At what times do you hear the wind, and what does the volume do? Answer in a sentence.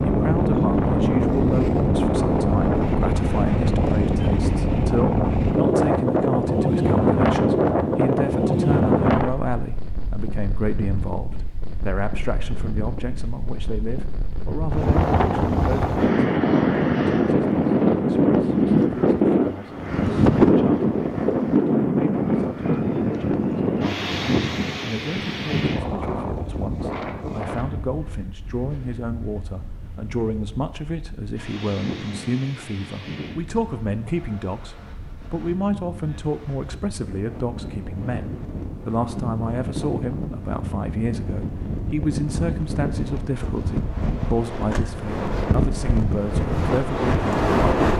The wind can be heard from 0.0 to 47.9 s, getting quieter then louder.